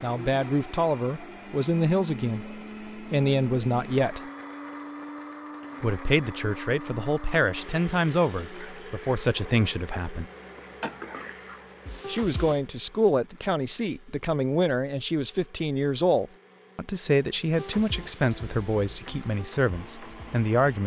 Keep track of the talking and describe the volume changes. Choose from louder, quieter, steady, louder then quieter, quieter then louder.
steady.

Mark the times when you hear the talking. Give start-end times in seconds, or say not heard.
0.0-4.2, 5.8-10.2, 12.1-20.8.